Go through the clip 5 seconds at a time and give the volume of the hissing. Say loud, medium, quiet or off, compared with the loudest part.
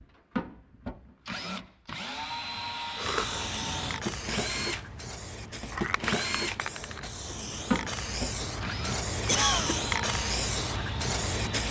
medium, loud, loud.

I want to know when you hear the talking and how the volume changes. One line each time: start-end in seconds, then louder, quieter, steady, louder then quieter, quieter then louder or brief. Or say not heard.
not heard.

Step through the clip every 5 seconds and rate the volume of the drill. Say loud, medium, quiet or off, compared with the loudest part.
loud, loud, medium.